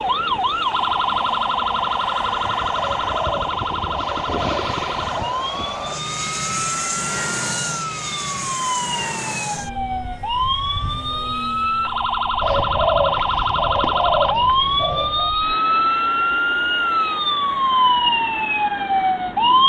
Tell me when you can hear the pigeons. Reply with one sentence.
The pigeons can be heard from 2.7 to 5.5 s and from 12.4 to 15.3 s.